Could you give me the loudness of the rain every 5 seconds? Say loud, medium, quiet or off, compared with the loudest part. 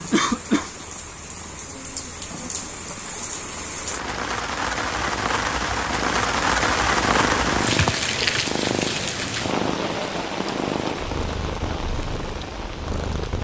medium, loud, medium.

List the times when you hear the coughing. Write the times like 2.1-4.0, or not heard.
0.1-0.8.